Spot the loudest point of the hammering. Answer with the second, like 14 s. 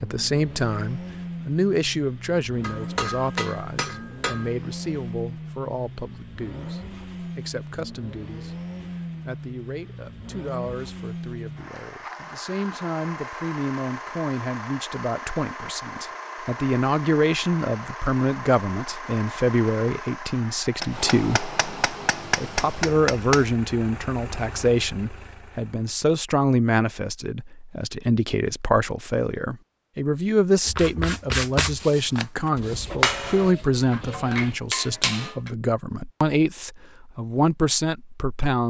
33 s.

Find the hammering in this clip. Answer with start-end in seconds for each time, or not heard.
2.6-4.5, 20.8-23.4, 32.9-35.5.